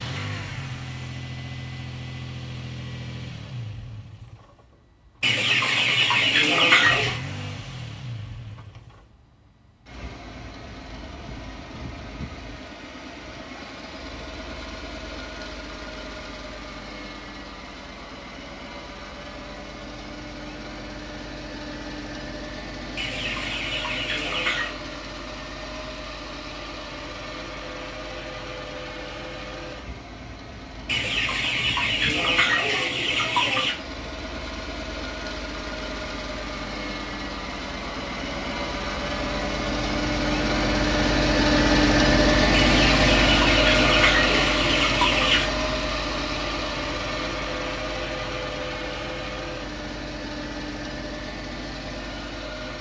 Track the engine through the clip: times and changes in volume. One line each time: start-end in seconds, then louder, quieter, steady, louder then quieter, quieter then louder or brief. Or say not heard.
0.0-52.7 louder.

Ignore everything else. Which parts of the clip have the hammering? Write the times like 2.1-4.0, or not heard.
not heard.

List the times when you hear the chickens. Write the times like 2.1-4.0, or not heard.
5.2-7.2, 22.9-24.8, 30.9-33.8, 42.5-45.5.